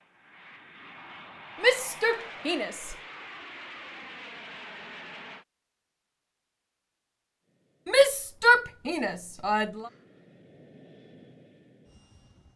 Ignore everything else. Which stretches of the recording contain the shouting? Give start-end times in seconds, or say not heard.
1.6-3.0, 7.8-9.9.